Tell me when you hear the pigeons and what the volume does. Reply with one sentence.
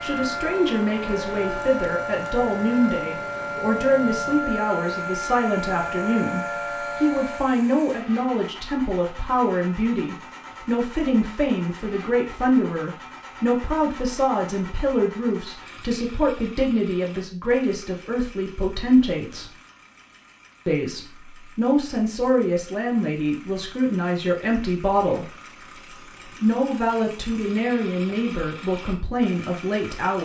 The pigeons can't be heard in this clip.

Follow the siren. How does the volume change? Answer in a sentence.
The loudness of the siren stays about the same.